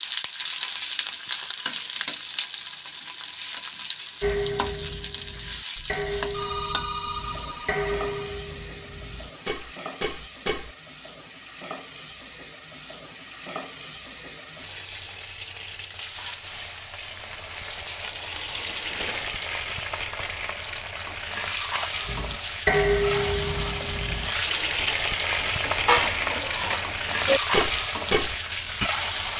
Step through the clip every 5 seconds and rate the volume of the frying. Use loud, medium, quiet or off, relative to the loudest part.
medium, medium, quiet, medium, loud, loud.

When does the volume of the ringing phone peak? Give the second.
7 s.